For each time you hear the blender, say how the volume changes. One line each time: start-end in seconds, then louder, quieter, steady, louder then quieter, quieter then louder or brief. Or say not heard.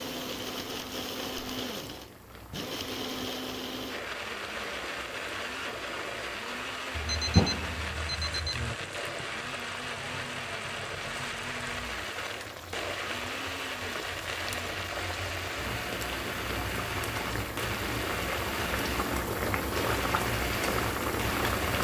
0.0-21.7 steady.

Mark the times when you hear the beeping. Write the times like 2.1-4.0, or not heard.
7.0-8.8.